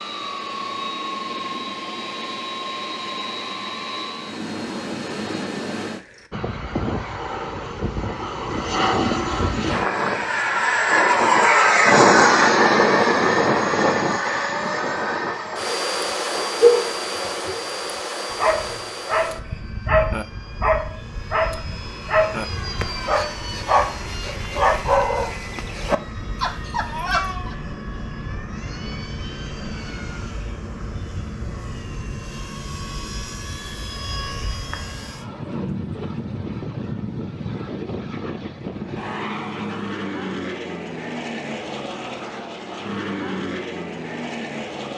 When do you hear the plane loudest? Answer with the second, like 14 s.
12 s.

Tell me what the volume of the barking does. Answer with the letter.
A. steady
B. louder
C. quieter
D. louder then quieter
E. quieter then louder
C.